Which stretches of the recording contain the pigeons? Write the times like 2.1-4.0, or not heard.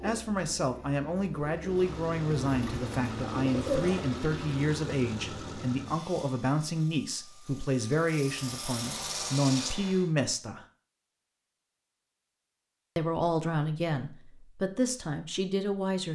0.0-4.2.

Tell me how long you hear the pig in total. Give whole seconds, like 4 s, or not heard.
not heard.